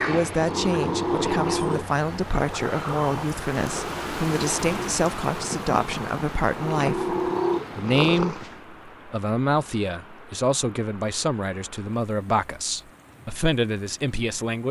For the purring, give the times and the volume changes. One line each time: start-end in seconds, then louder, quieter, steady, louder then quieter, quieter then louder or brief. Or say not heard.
0.0-8.6 quieter then louder.